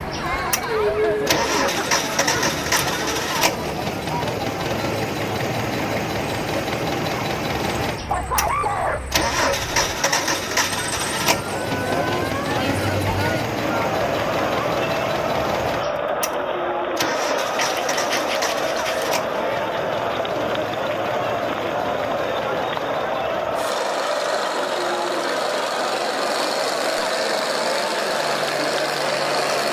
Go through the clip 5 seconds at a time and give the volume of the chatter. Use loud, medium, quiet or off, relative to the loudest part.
loud, quiet, loud, loud, loud, loud.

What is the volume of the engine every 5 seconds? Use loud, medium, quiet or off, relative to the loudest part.
loud, loud, loud, medium, medium, loud.